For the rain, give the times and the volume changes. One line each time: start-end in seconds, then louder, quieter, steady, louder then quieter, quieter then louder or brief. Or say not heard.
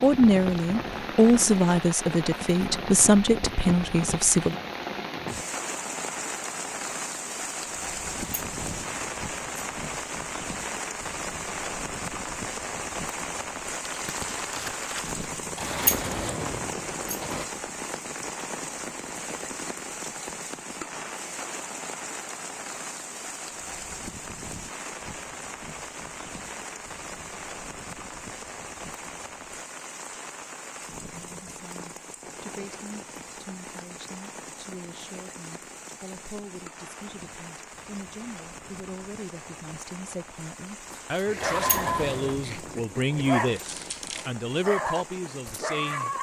0.0-46.1 quieter.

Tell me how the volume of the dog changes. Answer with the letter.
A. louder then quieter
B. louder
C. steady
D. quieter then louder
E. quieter
D.